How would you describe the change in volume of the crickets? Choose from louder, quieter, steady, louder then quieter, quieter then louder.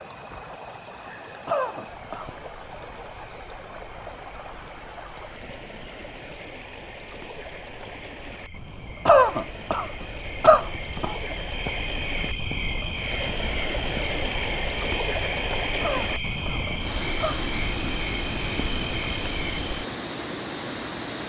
louder.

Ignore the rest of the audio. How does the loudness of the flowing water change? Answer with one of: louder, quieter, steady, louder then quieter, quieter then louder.
louder.